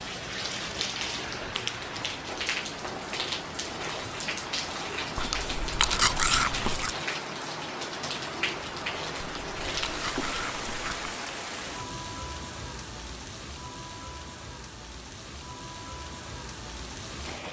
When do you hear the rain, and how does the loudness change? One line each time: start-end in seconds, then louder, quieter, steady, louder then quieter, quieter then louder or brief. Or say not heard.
0.0-17.4 quieter.